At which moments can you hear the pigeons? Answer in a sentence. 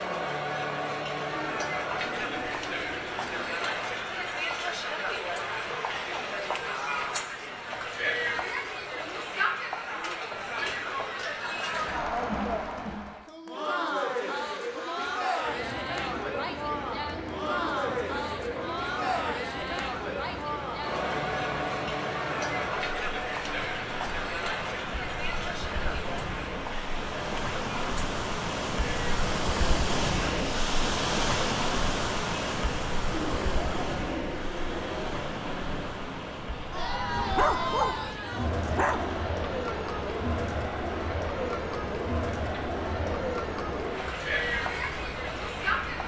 You can hear the pigeons from 1.3 to 3.6 s and from 33.1 to 35.2 s.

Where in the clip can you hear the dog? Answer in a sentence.
The dog can be heard from 37.0 to 39.1 s.